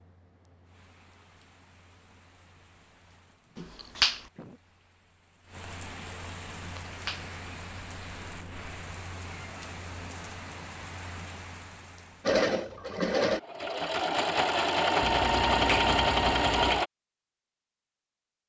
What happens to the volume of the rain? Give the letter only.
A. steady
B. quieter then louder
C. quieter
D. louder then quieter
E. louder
E.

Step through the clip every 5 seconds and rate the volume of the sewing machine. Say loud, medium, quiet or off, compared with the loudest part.
off, off, loud, loud.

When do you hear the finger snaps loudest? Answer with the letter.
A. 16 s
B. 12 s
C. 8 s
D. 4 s
D.